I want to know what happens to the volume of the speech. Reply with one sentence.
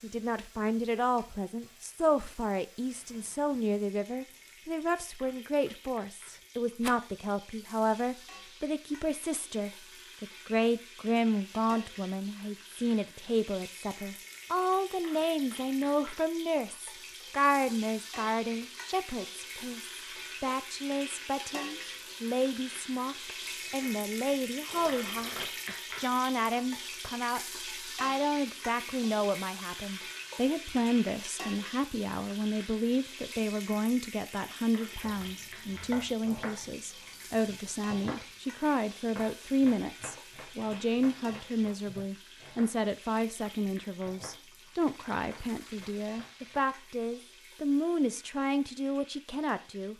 The volume of the speech stays about the same.